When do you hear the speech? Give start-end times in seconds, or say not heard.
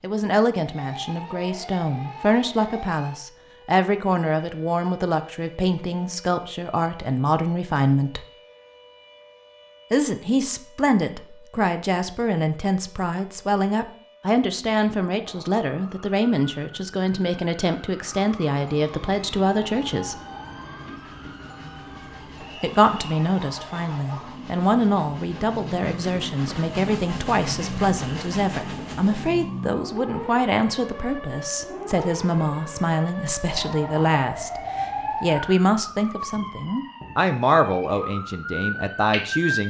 0.0-8.2, 9.9-20.2, 22.6-39.6.